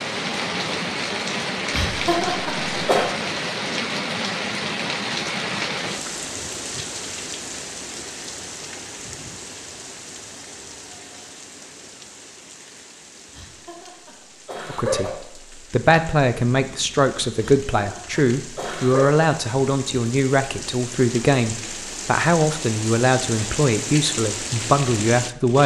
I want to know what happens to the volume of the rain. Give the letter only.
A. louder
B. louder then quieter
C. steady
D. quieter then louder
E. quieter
D.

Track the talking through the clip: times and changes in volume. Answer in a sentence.
The talking can be heard briefly from 14.7 to 15.1 s; and from 15.7 to 25.6 s, at a steady volume.